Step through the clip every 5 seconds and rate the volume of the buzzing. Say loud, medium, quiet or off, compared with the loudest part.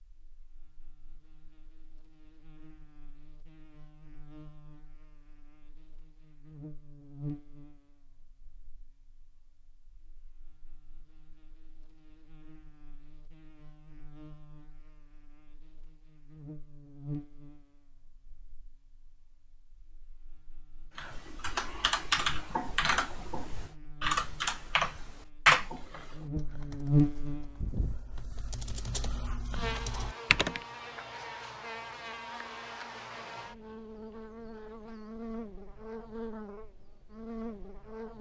quiet, quiet, quiet, quiet, quiet, loud, medium, medium.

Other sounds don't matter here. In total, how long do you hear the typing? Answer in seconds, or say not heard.
10 s.